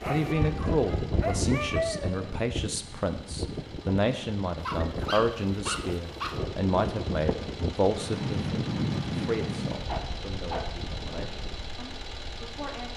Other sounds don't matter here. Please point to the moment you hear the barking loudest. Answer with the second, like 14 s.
2 s.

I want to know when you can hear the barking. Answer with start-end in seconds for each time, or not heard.
0.0-2.3, 4.5-6.3, 9.8-10.7.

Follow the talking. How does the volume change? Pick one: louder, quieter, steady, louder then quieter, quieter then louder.
quieter.